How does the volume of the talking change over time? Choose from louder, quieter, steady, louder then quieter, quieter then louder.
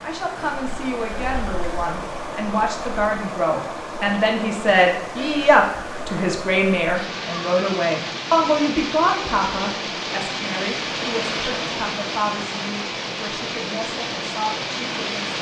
louder then quieter.